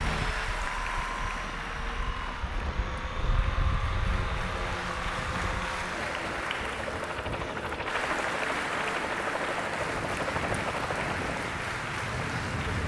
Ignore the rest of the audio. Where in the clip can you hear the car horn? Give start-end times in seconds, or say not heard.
not heard.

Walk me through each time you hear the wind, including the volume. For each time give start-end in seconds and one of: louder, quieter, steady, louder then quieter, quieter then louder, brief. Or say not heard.
0.0-12.8 louder.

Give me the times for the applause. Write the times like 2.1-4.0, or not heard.
0.0-12.8.